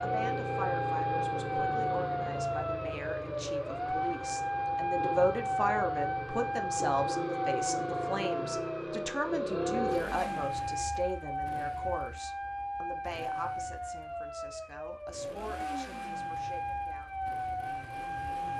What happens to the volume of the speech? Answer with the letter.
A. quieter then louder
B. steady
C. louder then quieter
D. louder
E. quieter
C.